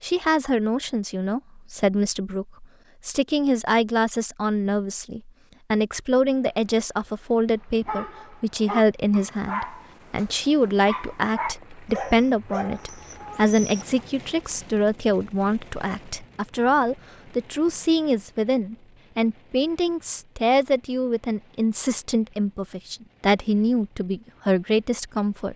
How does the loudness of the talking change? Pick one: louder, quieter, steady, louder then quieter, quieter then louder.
steady.